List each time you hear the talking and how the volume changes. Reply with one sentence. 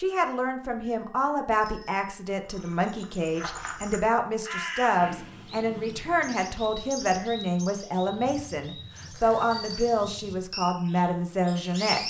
You can hear the talking from 0.0 to 12.0 s, at a steady volume.